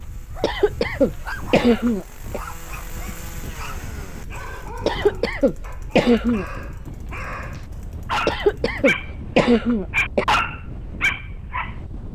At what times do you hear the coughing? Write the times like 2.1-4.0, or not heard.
0.4-2.4, 4.8-6.5, 8.2-10.2.